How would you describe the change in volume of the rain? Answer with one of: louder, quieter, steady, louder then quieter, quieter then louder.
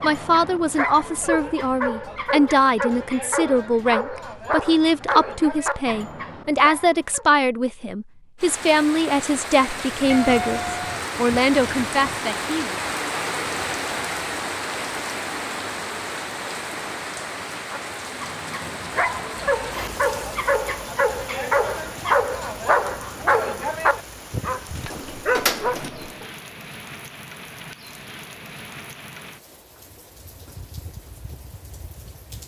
quieter.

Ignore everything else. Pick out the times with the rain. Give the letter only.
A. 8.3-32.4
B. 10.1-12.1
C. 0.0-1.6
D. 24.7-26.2
A.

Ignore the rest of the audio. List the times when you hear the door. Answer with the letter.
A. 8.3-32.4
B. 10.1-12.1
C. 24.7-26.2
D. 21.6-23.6
C.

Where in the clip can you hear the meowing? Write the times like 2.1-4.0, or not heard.
10.1-12.1.